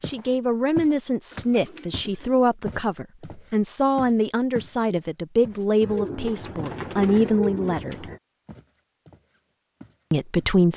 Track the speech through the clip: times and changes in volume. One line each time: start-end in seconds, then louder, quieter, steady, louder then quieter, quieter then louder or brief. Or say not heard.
0.1-8.1 steady
10.1-10.7 brief.